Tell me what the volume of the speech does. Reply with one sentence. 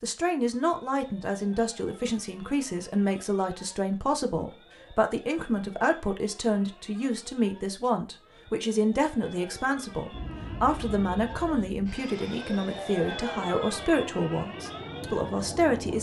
The loudness of the speech stays about the same.